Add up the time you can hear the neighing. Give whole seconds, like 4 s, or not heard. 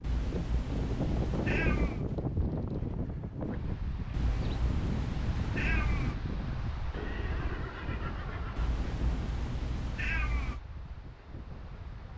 3 s.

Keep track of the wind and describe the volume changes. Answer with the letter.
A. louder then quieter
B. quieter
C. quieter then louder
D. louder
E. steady
B.